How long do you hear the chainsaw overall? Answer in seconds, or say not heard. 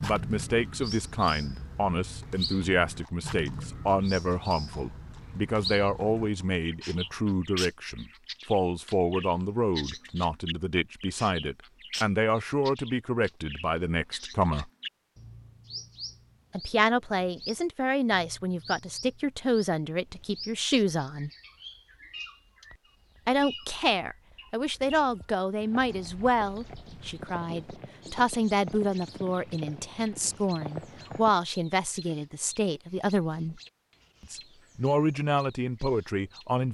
not heard.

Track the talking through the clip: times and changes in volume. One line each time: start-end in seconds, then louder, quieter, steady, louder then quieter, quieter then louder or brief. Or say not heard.
0.0-14.7 steady
16.5-21.3 steady
23.2-33.6 steady
34.2-36.7 brief.